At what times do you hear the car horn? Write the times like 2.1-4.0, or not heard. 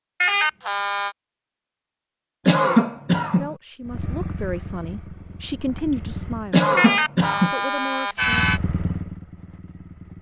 0.2-1.1, 6.8-8.6.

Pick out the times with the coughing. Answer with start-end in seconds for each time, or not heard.
2.5-3.5, 6.5-7.5.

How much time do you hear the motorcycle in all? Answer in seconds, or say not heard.
5 s.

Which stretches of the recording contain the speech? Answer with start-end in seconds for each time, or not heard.
3.2-6.7, 7.4-8.5.